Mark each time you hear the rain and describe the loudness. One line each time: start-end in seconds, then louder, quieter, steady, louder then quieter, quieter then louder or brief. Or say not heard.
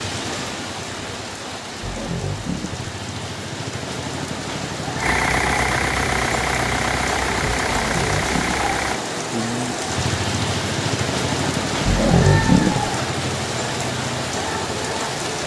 0.0-15.4 louder.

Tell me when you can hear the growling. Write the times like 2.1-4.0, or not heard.
1.8-2.9, 7.7-8.6, 11.8-12.9.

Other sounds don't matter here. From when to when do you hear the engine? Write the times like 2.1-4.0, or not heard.
5.0-9.0.